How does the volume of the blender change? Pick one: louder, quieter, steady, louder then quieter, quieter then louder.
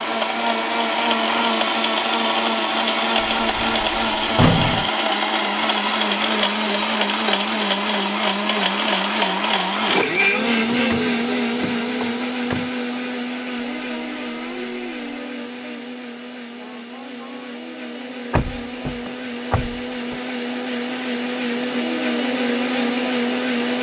quieter then louder.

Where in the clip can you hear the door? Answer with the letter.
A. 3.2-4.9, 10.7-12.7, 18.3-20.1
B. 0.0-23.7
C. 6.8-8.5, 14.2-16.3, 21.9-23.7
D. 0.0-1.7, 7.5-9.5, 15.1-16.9
A.